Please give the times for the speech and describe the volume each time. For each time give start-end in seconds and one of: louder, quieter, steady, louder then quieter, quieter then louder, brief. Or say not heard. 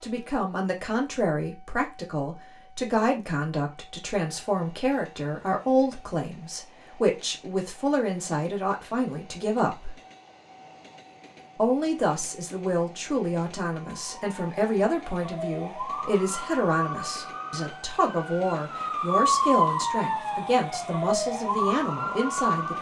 0.0-9.9 steady
11.6-22.7 steady.